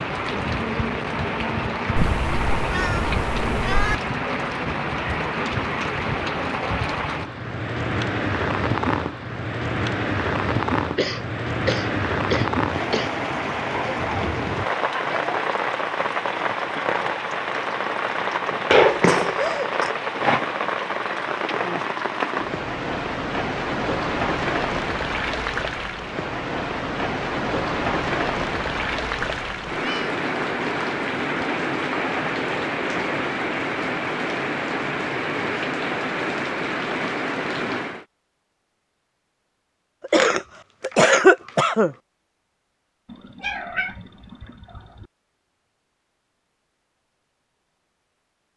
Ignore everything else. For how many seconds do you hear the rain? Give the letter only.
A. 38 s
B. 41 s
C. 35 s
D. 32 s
A.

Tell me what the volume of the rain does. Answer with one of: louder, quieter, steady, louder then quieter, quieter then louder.
steady.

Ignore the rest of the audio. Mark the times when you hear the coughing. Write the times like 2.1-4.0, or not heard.
10.9-13.2, 18.7-19.9, 40.0-42.0.